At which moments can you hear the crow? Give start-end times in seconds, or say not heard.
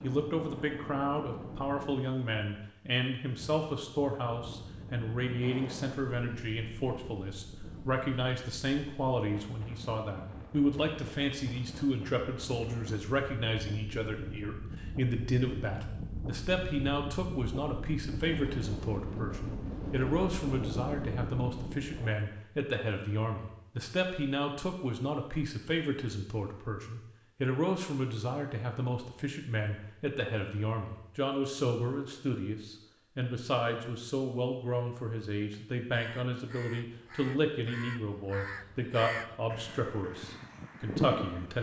35.9-41.5.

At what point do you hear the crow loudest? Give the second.
41 s.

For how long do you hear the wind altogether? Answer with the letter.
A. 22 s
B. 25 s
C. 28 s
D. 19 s
A.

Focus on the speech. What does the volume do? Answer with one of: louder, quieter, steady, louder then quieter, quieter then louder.
steady.